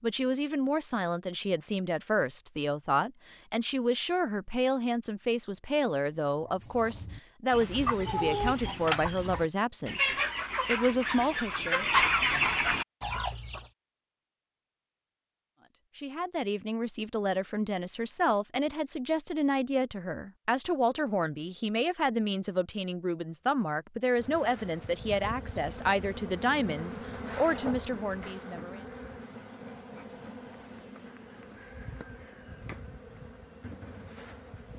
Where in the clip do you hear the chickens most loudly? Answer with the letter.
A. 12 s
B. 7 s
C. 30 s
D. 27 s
A.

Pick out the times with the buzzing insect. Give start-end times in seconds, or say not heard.
24.1-34.7.